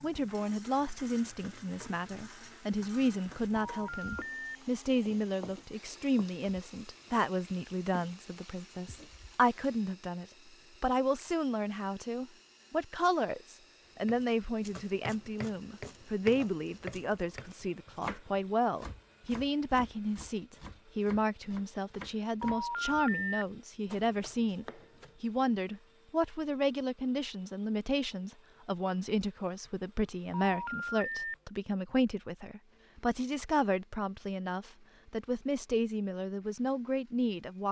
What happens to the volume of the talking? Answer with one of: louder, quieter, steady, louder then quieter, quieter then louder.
steady.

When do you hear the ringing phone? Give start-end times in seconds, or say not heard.
3.6-4.5, 22.4-23.4, 30.3-31.4.